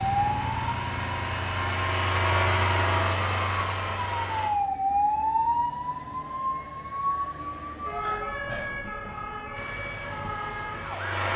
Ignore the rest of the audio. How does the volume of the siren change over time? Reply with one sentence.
The loudness of the siren goes up, then down.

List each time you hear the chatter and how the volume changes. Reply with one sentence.
The chatter can't be heard in this clip.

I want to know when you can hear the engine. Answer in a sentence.
The engine can be heard from 0.0 to 4.5 s and from 9.5 to 11.3 s.